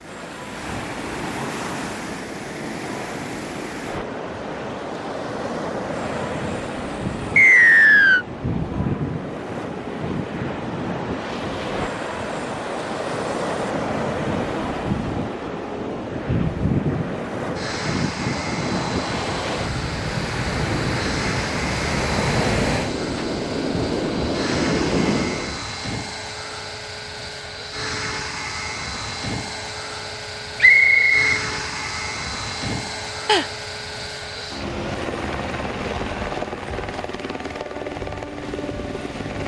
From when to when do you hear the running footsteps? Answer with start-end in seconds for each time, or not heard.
not heard.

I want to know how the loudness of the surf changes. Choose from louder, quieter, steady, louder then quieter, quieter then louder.
louder.